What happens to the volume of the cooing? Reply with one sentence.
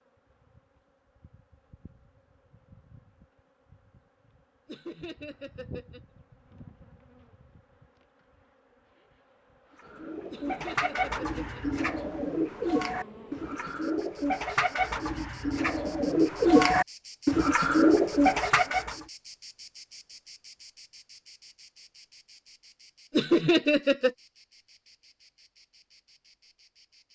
The volume of the cooing goes up.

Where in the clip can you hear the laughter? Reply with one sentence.
You can hear the laughter from 4.7 to 6.0 s, from 10.3 to 11.7 s and from 23.1 to 24.1 s.